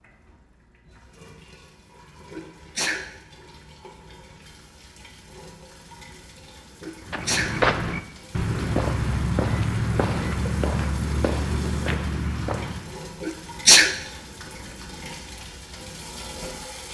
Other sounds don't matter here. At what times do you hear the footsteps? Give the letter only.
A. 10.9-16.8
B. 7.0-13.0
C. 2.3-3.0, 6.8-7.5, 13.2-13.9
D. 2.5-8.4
B.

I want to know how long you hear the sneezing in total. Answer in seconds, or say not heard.
2 s.